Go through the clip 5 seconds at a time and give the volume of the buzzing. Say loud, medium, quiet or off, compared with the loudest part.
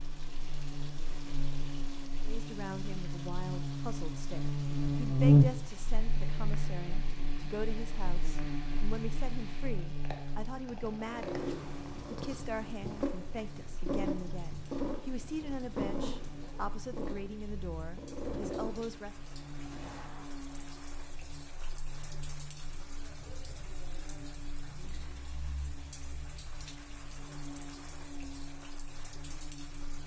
medium, loud, quiet, quiet, quiet, quiet.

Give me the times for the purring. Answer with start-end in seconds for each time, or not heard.
11.0-20.2.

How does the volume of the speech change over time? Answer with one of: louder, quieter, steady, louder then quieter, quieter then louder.
steady.